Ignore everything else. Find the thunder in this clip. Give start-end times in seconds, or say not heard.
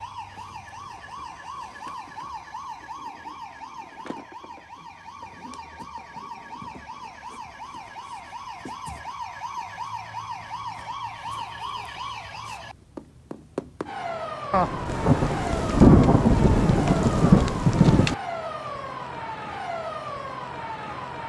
14.5-18.1.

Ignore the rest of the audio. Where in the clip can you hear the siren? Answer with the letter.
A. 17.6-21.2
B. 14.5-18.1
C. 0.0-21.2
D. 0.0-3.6
C.